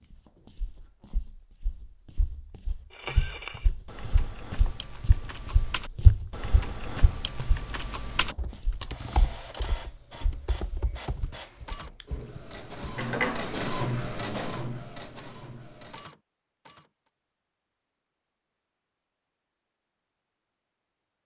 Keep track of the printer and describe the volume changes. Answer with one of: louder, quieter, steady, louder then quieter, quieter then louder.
louder then quieter.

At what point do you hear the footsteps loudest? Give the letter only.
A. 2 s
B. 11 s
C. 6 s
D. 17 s
C.